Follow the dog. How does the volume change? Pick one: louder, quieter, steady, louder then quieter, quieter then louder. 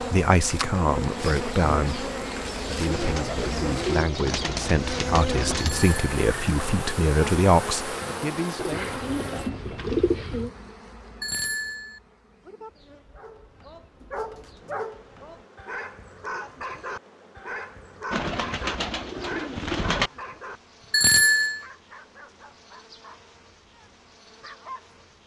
quieter.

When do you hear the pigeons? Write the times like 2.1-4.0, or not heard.
2.9-5.7, 8.6-10.5, 18.1-20.1.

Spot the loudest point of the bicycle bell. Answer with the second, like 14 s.
21 s.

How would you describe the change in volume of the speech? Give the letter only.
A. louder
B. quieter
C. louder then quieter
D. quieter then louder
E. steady
D.